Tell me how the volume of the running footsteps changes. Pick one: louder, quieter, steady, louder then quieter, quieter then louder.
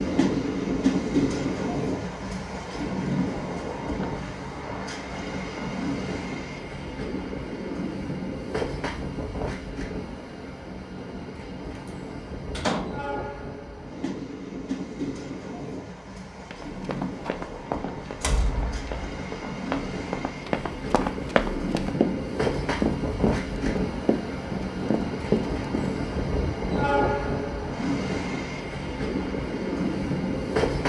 louder.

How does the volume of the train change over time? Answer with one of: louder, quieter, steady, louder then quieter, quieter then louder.
quieter then louder.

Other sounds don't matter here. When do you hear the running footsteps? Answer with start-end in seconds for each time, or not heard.
16.5-25.9.